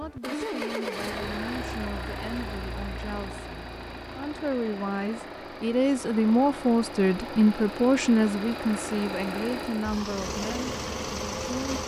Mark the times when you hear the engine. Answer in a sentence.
The engine can be heard from 0.0 to 11.8 s.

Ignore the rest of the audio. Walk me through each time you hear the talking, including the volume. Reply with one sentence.
The talking can be heard from 0.0 to 11.8 s, getting louder then quieter.